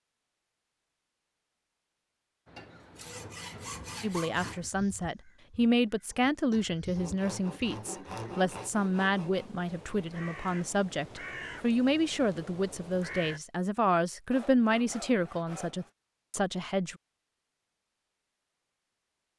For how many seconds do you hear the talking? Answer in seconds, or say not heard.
13 s.